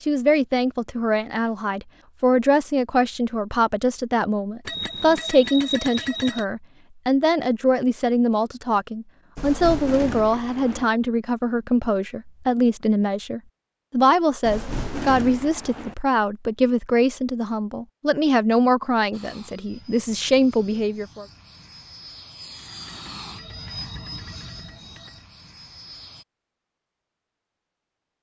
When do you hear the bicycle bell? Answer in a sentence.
You can hear the bicycle bell from 4.7 to 6.5 s and from 22.9 to 25.2 s.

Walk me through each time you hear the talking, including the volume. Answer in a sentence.
You can hear the talking from 0.0 to 21.2 s, at a steady volume.